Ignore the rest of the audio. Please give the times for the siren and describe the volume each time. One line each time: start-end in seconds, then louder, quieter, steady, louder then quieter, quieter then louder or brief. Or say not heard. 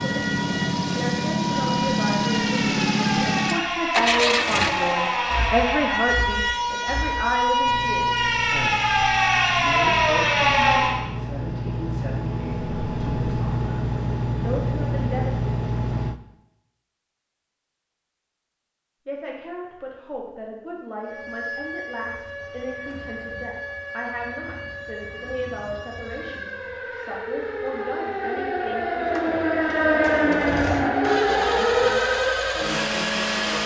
0.0-11.0 louder
21.0-33.4 louder.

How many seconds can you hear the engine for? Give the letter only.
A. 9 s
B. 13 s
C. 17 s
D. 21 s
D.